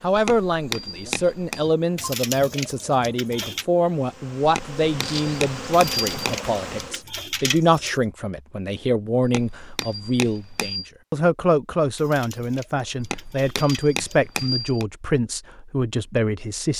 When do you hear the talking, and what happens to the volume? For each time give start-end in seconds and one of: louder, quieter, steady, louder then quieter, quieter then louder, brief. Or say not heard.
0.0-16.7 steady.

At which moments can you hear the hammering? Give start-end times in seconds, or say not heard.
0.1-1.7, 4.4-6.3, 9.2-10.9, 12.9-14.8.